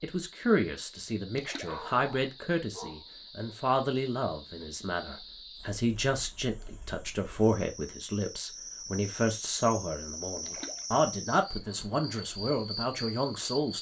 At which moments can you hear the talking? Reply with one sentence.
You can hear the talking from 0.0 to 13.7 s.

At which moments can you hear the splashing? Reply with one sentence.
The splashing can be heard from 1.4 to 1.8 s and from 10.4 to 10.8 s.